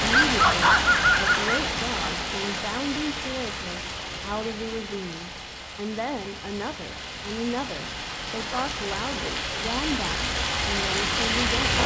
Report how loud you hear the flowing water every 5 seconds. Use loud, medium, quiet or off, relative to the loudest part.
loud, medium, loud.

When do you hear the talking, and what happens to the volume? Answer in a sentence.
You can hear the talking from 0.0 to 11.8 s, at a steady volume.